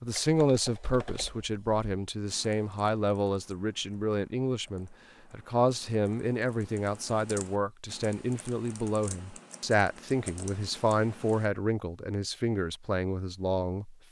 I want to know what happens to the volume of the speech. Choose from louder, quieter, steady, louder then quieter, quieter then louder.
steady.